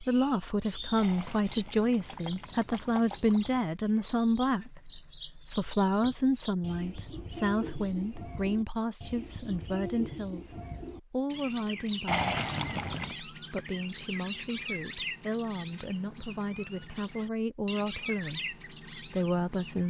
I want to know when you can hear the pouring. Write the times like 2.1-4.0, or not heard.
0.9-3.6, 12.1-13.2.